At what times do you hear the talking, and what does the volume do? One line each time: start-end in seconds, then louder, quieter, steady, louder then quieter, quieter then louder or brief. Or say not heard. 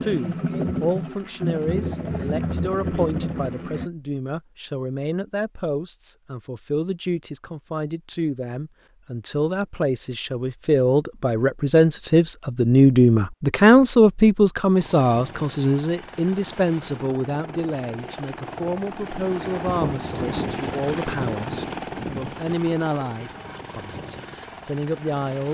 0.0-25.4 louder then quieter.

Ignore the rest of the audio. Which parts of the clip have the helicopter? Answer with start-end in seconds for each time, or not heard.
0.0-3.9, 14.8-25.4.